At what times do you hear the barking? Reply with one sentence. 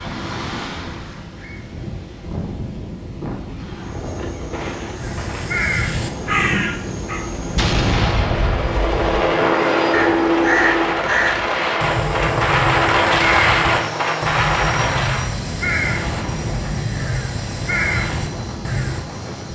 You can't hear the barking here.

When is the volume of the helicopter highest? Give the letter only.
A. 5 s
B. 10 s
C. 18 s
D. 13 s
B.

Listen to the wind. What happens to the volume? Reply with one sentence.
The volume of the wind goes up, then down.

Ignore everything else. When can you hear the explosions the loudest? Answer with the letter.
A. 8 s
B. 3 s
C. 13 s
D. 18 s
A.